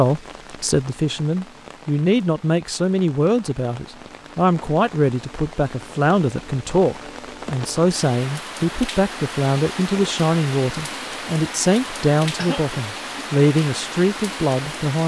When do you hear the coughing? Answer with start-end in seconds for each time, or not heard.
12.3-12.8.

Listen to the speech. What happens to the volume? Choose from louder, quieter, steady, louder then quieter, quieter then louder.
steady.